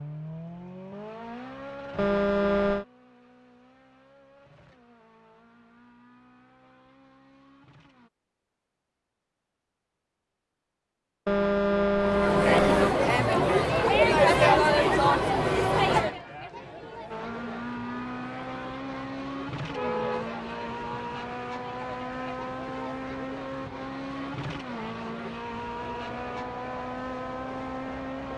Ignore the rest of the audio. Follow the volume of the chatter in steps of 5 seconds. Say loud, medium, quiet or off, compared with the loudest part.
off, off, loud, medium, quiet, quiet.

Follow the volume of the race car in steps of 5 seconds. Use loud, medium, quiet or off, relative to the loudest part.
medium, quiet, off, loud, loud, loud.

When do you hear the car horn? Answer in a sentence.
You can hear the car horn from 1.9 to 2.9 s, from 11.2 to 12.9 s and from 19.7 to 21.1 s.